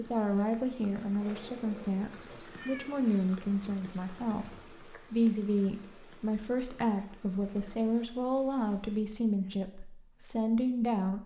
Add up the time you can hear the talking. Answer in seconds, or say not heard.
11 s.